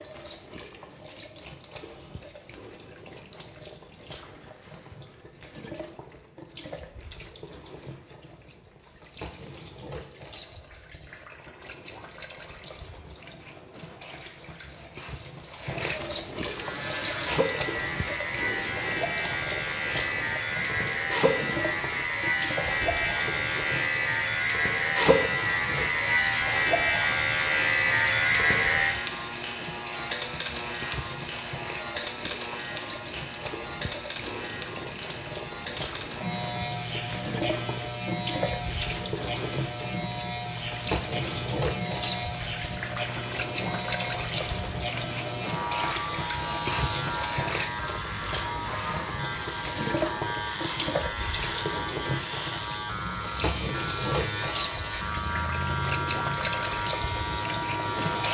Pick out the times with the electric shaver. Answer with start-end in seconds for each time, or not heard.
16.4-58.2.